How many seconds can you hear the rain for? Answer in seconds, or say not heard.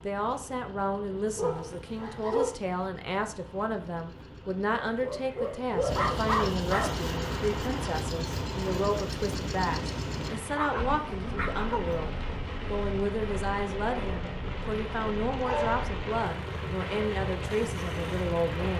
12 s.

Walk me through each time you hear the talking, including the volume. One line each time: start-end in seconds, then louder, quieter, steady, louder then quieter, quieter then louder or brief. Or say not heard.
0.0-18.7 steady.